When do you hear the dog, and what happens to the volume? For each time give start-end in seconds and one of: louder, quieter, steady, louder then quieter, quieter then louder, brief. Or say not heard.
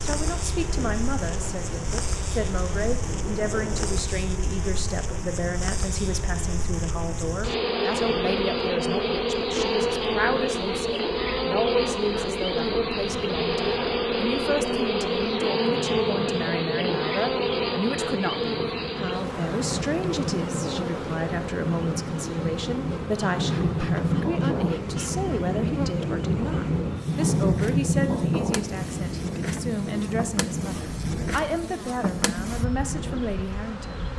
not heard.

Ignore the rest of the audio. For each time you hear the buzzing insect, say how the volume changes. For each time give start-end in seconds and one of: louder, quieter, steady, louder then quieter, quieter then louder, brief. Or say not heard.
0.0-34.1 louder then quieter.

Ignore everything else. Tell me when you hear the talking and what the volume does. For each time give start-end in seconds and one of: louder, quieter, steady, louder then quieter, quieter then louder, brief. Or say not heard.
0.0-34.0 steady.